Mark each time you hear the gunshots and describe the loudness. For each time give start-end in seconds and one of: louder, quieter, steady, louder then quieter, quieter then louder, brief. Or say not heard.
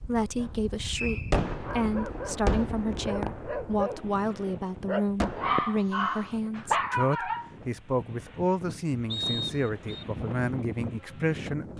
1.3-5.6 louder then quieter.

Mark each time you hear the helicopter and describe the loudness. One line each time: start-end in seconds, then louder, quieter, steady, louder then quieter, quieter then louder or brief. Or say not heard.
not heard.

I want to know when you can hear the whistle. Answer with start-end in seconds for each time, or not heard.
0.9-1.4, 9.1-10.1.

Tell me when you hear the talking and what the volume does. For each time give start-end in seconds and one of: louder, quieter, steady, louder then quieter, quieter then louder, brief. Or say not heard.
0.0-11.7 steady.